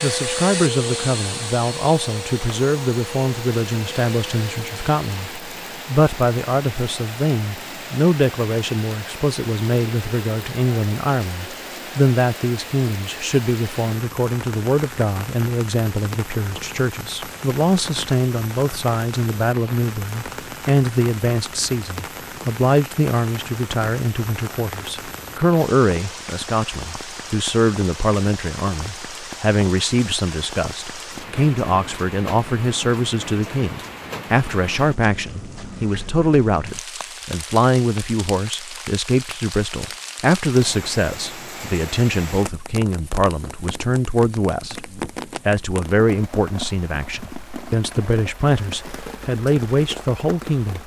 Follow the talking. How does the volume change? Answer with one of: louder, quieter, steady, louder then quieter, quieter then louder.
steady.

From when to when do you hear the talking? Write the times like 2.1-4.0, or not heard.
0.0-50.8.